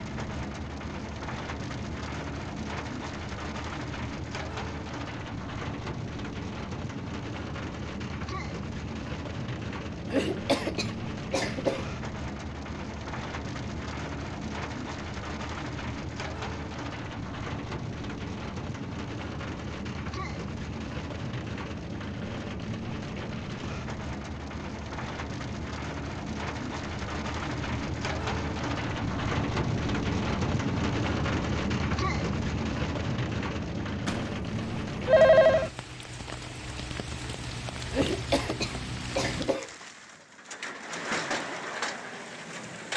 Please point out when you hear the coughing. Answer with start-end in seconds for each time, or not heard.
10.1-11.9, 37.9-39.7.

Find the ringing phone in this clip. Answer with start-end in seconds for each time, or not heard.
34.0-35.7.